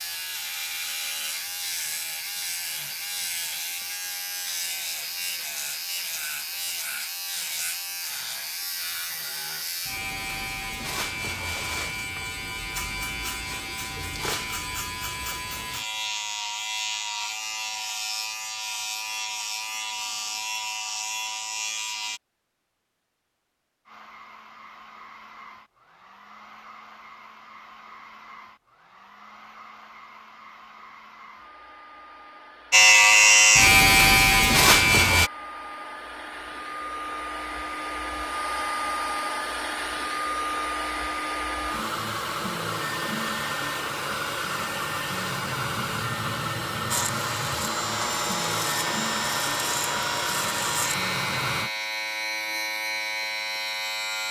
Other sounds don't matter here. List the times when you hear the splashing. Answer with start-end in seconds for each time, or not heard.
not heard.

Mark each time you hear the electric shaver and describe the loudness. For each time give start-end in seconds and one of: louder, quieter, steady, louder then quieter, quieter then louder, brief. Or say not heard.
0.0-22.2 steady
32.7-35.3 brief
46.9-54.2 steady.